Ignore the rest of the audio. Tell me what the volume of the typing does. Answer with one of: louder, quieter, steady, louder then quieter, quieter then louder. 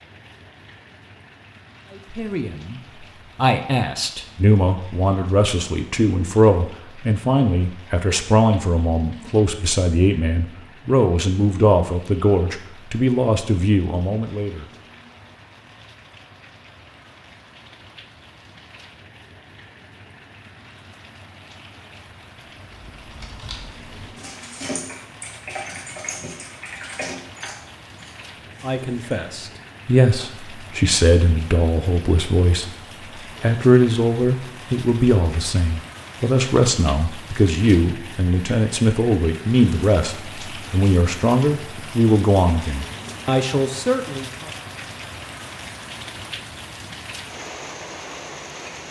louder then quieter.